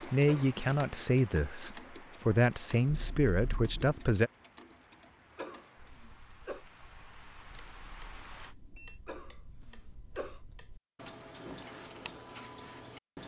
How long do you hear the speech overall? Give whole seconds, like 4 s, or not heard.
4 s.